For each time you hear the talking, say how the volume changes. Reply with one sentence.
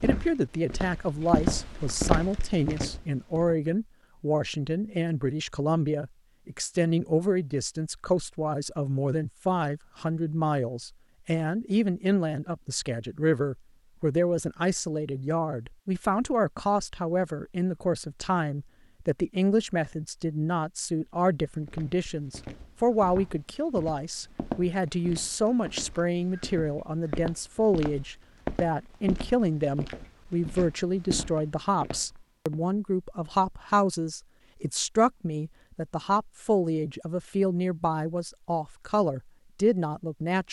The talking can be heard from 0.0 to 40.4 s, at a steady volume.